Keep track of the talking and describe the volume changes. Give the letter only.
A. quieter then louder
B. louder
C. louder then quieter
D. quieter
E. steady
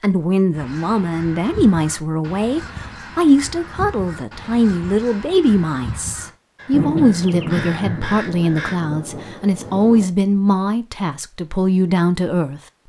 E.